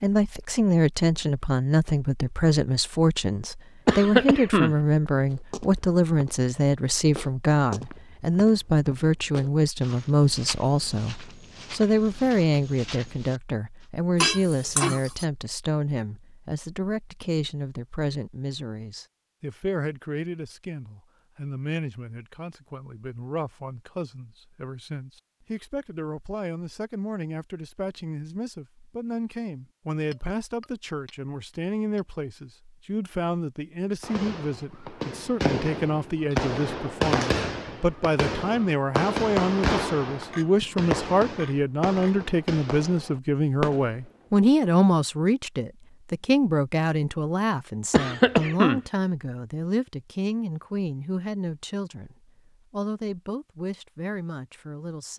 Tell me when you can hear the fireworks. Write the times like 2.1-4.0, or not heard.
34.0-44.3.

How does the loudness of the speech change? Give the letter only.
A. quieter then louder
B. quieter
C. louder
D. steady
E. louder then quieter
A.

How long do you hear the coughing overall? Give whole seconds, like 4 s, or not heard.
2 s.